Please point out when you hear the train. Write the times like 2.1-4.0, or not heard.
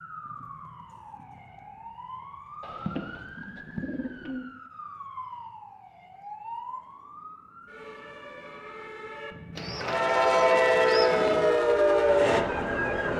9.7-13.1.